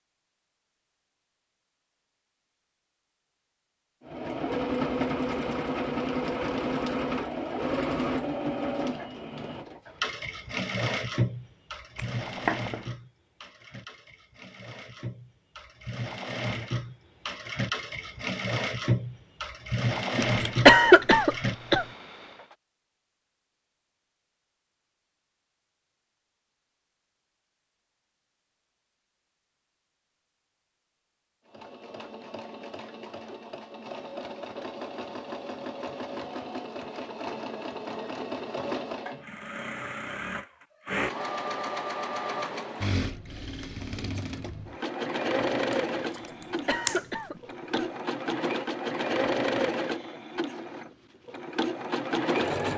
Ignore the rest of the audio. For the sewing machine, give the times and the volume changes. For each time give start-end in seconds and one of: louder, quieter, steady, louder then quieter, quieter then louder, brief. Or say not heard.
4.0-22.6 quieter then louder
31.4-52.7 louder.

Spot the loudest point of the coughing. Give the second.
21 s.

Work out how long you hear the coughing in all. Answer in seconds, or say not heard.
3 s.